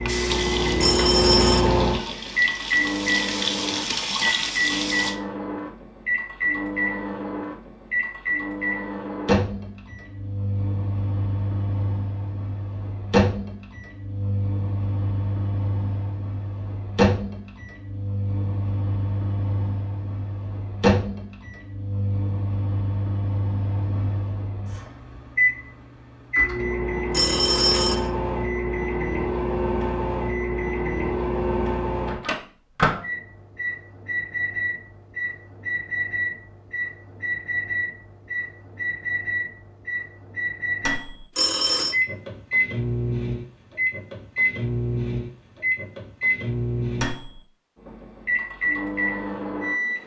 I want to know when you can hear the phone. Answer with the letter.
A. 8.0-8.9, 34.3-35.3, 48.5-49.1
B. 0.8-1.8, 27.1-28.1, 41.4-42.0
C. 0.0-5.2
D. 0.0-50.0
B.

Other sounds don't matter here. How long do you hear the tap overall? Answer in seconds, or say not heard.
5 s.